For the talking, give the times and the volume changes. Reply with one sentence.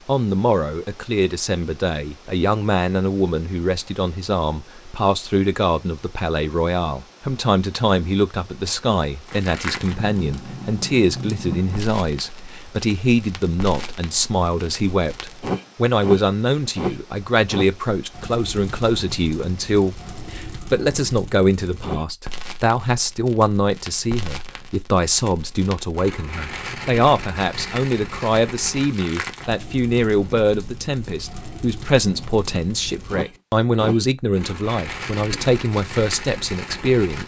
You can hear the talking from 0.1 to 37.2 s, at a steady volume.